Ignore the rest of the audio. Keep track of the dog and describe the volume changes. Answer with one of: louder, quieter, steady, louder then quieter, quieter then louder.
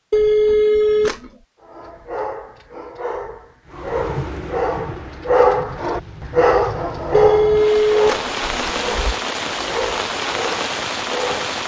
louder then quieter.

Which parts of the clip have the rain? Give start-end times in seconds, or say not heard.
3.6-11.6.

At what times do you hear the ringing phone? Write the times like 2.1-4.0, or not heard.
0.1-1.3, 7.1-9.2.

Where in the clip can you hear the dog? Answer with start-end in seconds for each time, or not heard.
1.6-11.6.